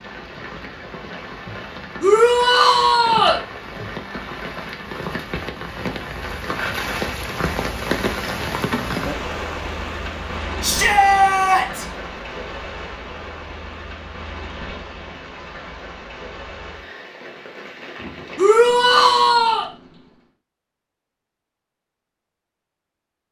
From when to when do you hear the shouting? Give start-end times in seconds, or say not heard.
2.0-3.4, 10.6-11.8, 18.4-19.6.